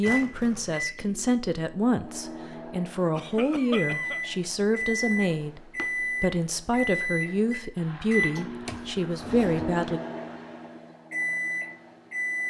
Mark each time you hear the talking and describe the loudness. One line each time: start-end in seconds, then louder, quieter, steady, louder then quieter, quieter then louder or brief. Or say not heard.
0.0-10.0 steady.